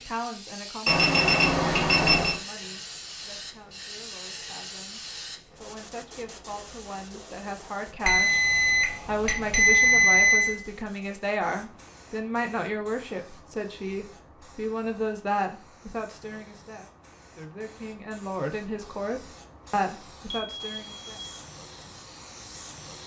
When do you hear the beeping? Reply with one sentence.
You can hear the beeping from 0.8 to 2.4 s, from 8.1 to 10.6 s and from 20.3 to 21.4 s.